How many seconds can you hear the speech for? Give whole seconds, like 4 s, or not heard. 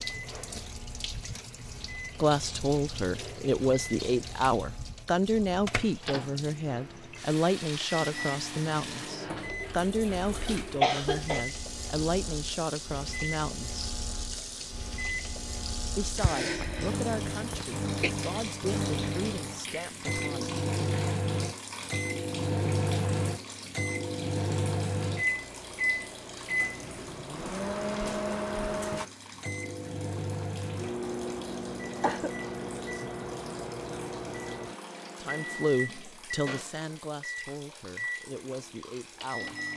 21 s.